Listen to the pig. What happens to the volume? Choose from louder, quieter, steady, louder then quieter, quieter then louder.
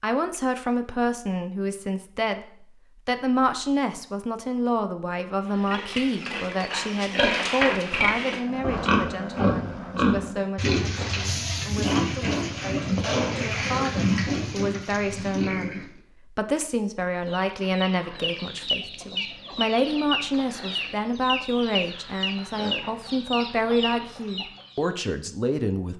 steady.